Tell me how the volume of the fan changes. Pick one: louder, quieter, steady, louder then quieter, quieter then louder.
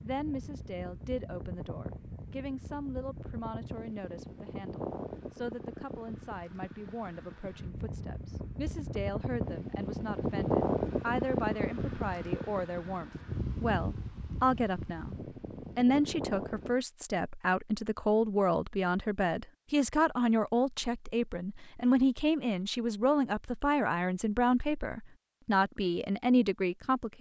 louder then quieter.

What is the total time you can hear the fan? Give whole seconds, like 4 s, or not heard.
17 s.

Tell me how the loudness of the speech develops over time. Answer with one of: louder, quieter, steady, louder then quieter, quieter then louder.
louder.